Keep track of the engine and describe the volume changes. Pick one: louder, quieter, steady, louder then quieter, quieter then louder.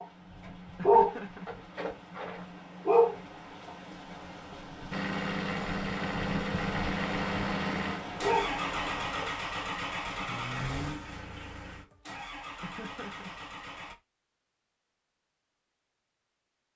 quieter.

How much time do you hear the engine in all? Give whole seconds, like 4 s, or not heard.
9 s.